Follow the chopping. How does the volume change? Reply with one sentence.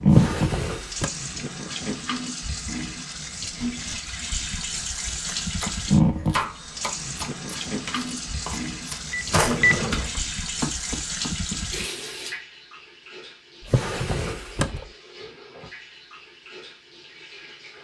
The volume of the chopping goes down, then up.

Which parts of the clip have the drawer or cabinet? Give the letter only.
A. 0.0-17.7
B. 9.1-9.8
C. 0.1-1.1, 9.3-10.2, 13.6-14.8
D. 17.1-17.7
C.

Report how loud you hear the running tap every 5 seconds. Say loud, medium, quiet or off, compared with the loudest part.
loud, loud, medium, quiet.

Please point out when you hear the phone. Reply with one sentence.
You can hear the phone from 9.1 to 9.8 s.